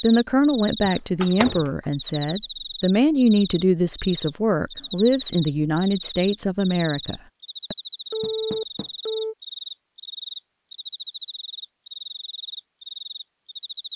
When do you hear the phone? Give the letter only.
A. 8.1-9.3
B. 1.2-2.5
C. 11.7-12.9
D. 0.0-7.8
A.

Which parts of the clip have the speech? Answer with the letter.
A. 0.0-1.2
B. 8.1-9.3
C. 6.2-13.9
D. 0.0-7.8
D.